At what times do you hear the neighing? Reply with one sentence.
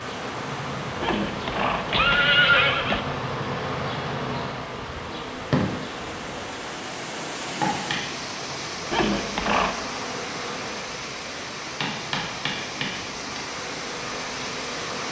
The neighing can be heard from 1.0 to 3.0 s and from 8.9 to 9.8 s.